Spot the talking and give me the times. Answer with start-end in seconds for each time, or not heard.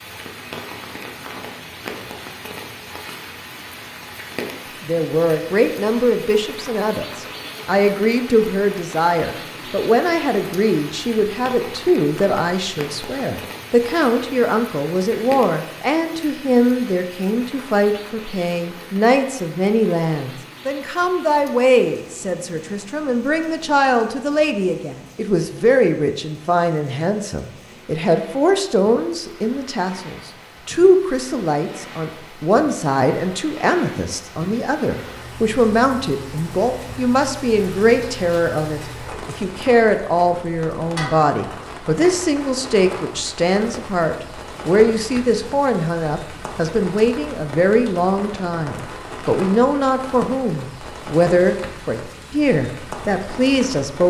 4.8-54.0.